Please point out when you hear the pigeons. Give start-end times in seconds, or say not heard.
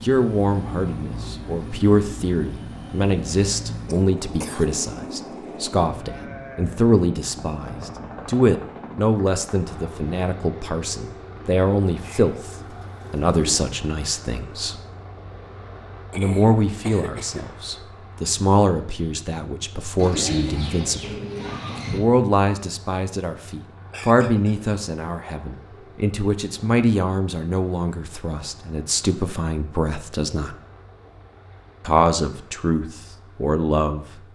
12.0-13.7, 19.9-22.0.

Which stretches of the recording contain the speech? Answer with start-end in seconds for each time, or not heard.
0.0-14.8, 16.1-21.1, 21.9-30.6, 31.9-34.0.